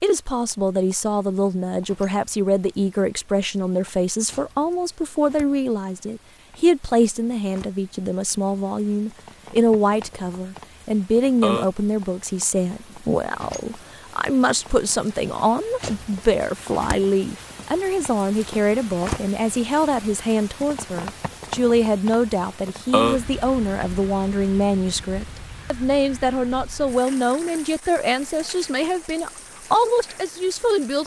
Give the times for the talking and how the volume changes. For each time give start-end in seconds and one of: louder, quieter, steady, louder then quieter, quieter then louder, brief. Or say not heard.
0.0-31.0 steady.